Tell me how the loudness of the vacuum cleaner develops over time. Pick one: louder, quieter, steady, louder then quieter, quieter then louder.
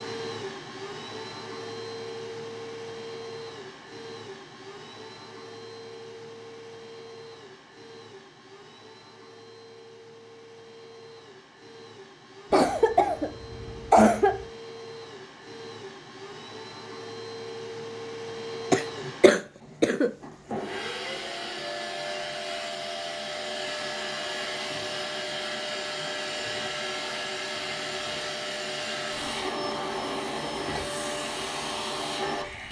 quieter then louder.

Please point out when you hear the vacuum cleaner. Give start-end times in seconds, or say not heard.
0.0-32.6.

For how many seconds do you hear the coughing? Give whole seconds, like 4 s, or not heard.
3 s.